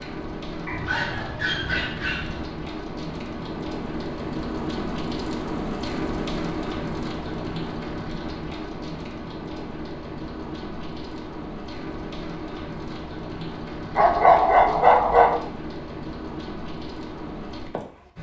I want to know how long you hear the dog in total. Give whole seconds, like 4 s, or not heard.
3 s.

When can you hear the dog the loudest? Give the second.
14 s.